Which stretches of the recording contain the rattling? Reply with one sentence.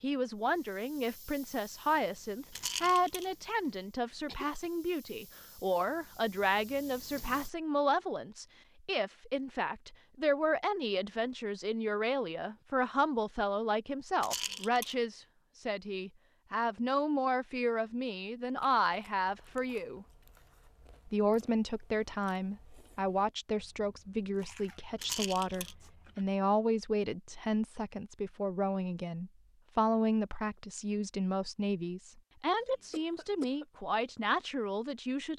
The rattling can be heard from 2.5 to 3.3 s, from 14.2 to 14.9 s and from 24.9 to 25.8 s.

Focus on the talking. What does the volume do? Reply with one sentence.
The loudness of the talking stays about the same.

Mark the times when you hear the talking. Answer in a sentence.
The talking can be heard from 0.0 to 20.1 s and from 21.1 to 35.3 s.